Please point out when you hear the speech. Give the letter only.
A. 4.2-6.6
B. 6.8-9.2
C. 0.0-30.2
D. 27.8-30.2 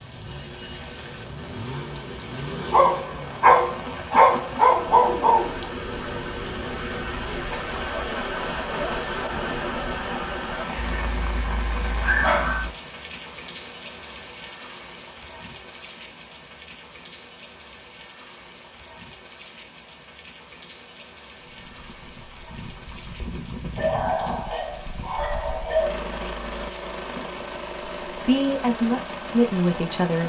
D.